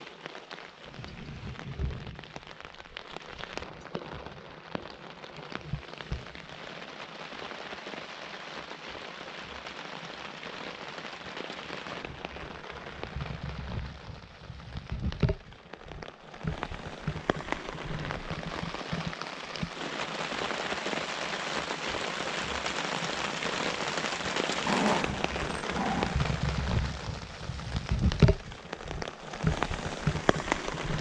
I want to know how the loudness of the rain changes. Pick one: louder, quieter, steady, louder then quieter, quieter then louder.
louder.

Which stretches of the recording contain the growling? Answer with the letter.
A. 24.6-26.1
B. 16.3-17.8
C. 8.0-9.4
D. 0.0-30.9
A.